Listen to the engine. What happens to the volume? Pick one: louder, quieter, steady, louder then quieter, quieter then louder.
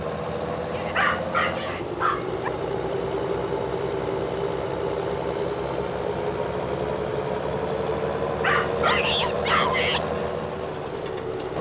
steady.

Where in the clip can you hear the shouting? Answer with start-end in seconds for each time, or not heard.
0.7-1.9, 8.8-10.1.